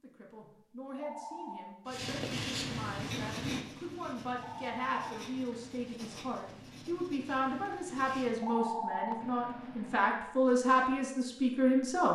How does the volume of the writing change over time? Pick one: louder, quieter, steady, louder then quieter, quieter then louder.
quieter.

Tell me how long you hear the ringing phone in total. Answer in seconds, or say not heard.
4 s.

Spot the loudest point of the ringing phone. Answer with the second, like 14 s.
9 s.